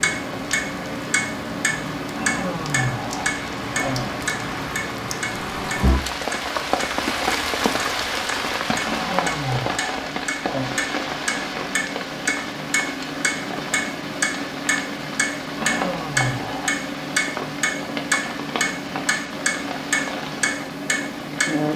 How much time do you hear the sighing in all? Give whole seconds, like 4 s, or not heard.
5 s.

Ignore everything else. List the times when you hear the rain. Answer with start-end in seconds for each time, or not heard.
0.0-21.7.